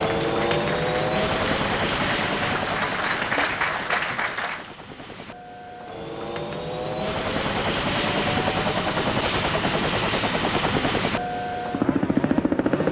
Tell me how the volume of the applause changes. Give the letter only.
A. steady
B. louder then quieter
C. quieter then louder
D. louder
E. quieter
D.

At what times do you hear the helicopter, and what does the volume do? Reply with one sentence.
You can hear the helicopter from 0.0 to 12.8 s, getting quieter then louder.